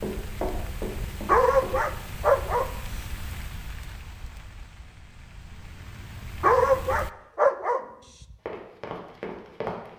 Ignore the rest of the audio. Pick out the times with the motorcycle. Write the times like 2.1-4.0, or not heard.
not heard.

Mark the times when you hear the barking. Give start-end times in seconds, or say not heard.
1.2-2.7, 6.4-8.3.